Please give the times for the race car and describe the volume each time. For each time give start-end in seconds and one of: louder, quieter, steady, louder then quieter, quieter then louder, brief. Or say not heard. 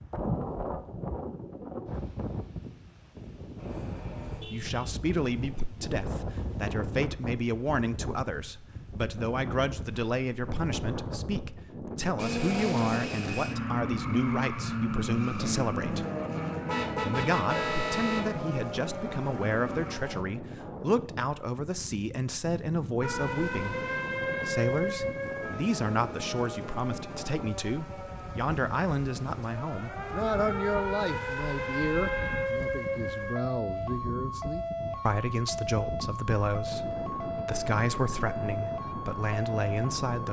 12.2-19.9 quieter.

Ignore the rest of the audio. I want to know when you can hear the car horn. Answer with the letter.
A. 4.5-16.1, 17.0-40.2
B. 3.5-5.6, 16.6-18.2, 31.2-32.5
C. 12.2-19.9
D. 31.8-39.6
B.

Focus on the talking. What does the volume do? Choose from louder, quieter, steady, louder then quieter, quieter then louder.
steady.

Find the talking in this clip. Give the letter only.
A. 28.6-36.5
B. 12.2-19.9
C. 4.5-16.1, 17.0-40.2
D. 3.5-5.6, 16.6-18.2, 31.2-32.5
C.